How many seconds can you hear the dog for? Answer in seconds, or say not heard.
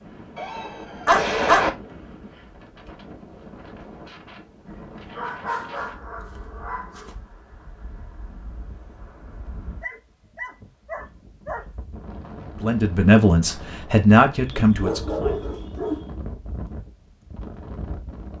7 s.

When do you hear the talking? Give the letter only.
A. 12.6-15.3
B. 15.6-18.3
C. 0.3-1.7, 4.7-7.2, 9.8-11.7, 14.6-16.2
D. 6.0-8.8
A.